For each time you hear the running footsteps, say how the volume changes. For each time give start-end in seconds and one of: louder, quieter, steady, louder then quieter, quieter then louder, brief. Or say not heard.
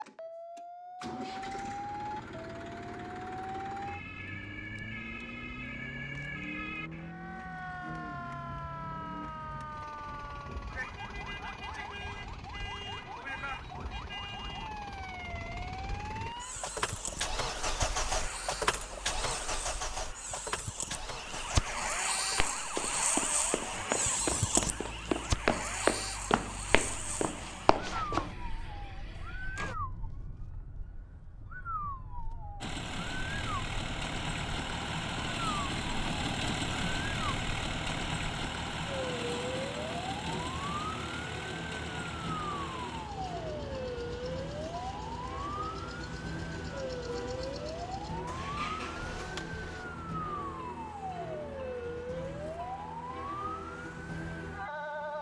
22.4-28.4 louder then quieter.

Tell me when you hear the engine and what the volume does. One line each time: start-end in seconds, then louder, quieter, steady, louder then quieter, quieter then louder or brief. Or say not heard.
0.0-29.8 louder then quieter
32.6-49.9 quieter.